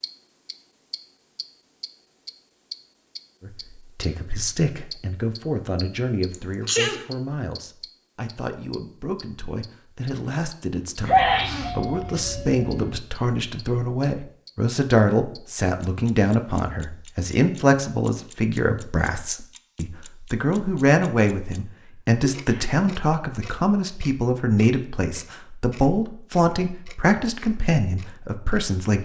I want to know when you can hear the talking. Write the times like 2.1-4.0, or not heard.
3.4-29.0.